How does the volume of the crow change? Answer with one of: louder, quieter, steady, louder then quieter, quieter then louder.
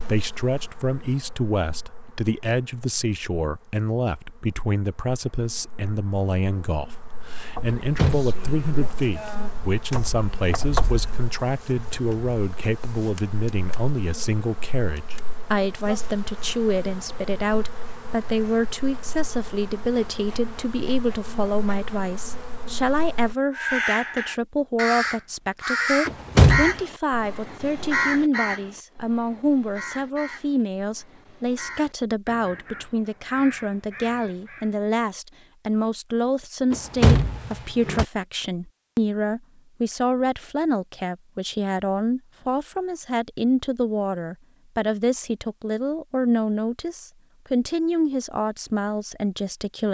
quieter.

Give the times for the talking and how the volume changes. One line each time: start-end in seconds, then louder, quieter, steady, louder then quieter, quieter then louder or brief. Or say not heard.
0.1-49.8 steady.